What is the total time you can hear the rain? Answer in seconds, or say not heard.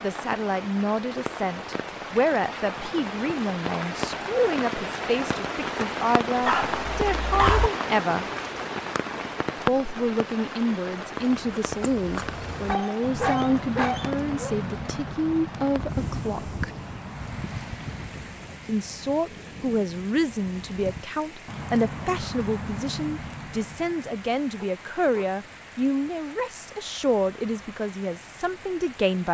29 s.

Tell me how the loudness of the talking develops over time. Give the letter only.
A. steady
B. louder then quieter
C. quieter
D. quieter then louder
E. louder
A.